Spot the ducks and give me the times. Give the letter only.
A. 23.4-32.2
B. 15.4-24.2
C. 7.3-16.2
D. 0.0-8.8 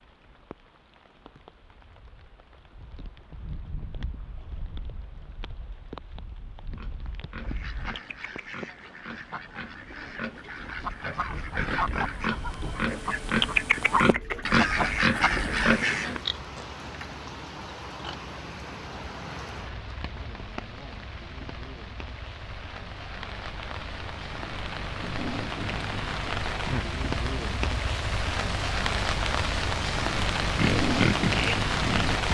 C.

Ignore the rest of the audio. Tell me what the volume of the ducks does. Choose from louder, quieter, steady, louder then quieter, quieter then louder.
louder.